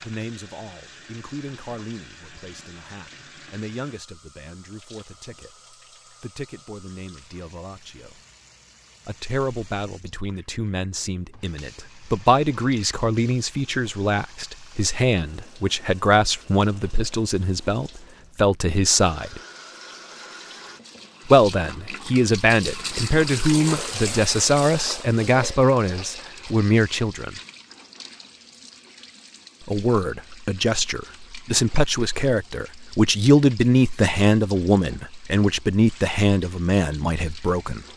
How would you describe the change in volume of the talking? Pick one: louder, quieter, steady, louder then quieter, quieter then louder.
louder.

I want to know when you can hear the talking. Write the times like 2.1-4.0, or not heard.
0.0-8.2, 9.1-19.4, 21.2-27.3, 29.6-37.8.